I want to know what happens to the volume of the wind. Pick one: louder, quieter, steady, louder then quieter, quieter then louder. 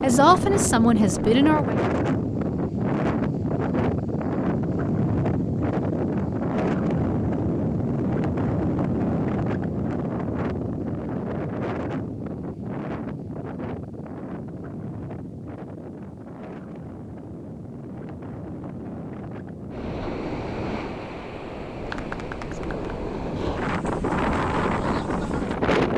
quieter then louder.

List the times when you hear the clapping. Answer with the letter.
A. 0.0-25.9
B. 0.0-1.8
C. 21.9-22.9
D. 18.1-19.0
C.